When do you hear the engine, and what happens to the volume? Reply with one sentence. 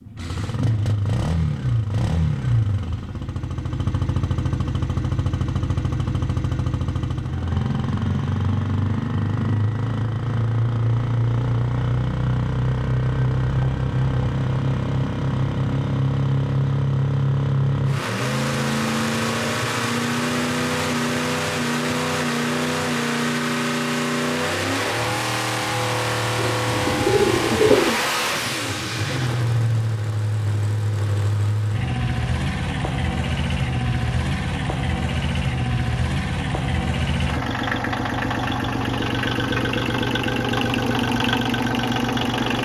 You can hear the engine from 0.0 to 42.6 s, at a steady volume.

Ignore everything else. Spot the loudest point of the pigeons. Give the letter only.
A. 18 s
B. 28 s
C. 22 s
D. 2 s
B.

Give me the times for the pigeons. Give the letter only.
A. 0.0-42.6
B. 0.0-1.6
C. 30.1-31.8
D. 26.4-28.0
D.